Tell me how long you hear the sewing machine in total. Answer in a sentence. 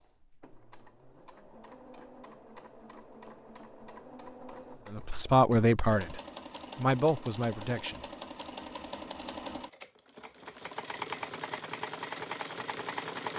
The sewing machine can be heard for 13 seconds in total.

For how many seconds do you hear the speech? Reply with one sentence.
The speech can be heard for 3 seconds in total.